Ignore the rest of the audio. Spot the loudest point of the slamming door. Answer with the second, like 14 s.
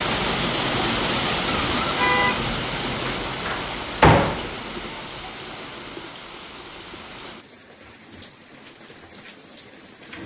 4 s.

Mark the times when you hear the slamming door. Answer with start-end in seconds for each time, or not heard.
2.9-4.5.